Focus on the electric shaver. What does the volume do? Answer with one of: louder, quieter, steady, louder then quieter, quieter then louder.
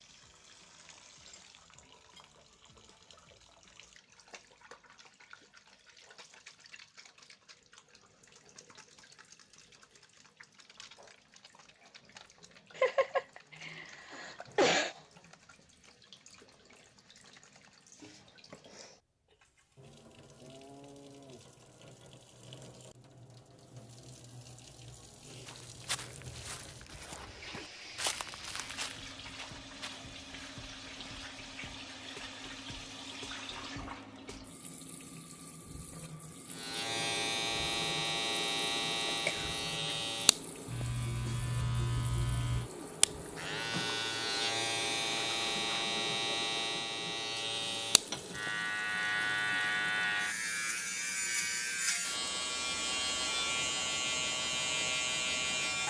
steady.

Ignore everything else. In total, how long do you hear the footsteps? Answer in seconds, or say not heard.
6 s.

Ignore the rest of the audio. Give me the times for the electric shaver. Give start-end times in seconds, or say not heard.
36.5-55.8.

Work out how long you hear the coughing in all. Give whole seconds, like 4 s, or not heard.
3 s.